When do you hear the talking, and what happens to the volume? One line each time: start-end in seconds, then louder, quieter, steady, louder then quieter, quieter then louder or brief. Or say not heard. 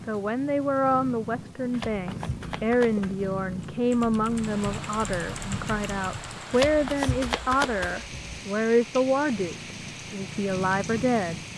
0.1-11.4 steady.